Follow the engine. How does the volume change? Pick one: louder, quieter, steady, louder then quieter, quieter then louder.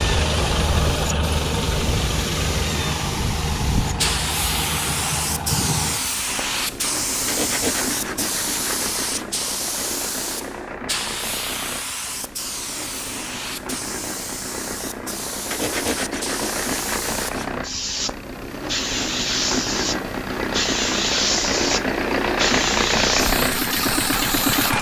quieter then louder.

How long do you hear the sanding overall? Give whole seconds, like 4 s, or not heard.
4 s.